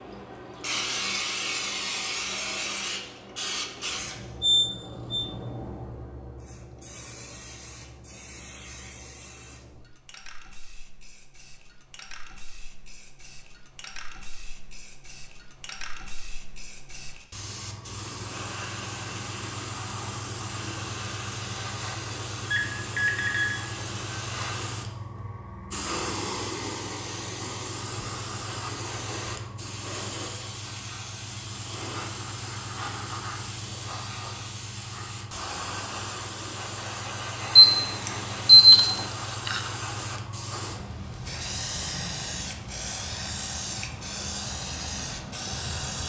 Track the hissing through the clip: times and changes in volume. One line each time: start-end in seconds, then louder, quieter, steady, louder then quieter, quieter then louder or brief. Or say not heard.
0.0-46.0 quieter then louder.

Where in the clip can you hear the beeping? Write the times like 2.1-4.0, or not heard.
4.4-5.2, 22.5-23.6, 37.5-39.0.